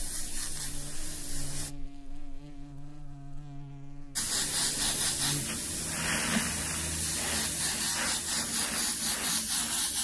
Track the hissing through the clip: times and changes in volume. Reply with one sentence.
You can hear the hissing briefly from 0.0 to 1.8 s; and from 4.2 to 9.9 s, at a steady volume.